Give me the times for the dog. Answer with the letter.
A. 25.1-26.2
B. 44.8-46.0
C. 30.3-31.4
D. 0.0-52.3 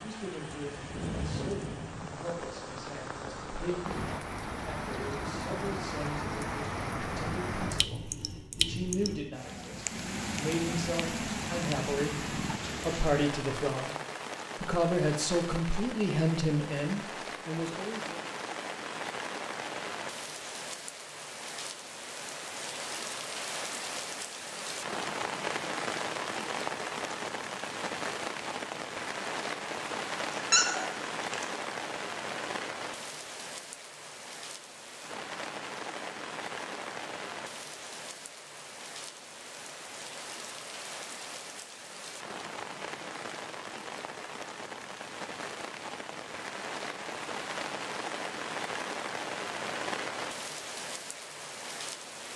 C.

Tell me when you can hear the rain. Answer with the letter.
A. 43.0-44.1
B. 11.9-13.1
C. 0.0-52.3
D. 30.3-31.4
C.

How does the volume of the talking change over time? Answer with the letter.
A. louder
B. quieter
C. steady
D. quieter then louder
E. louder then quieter
A.